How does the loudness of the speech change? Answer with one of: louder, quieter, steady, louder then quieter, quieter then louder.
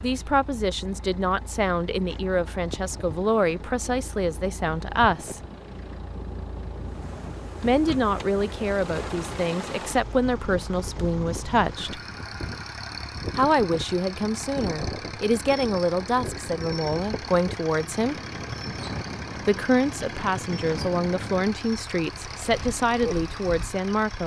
steady.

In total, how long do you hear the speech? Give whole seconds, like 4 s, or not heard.
19 s.